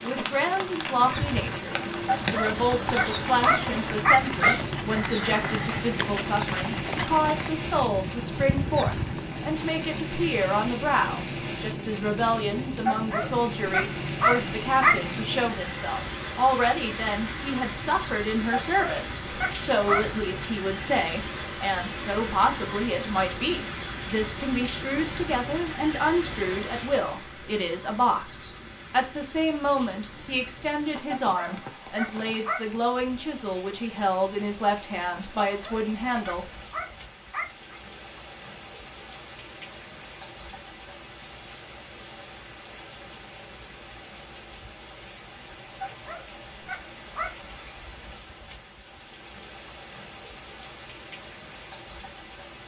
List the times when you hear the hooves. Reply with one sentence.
The hooves can be heard from 1.1 to 9.5 s.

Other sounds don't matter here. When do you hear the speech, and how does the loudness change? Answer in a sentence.
The speech can be heard from 0.0 to 36.5 s, at a steady volume.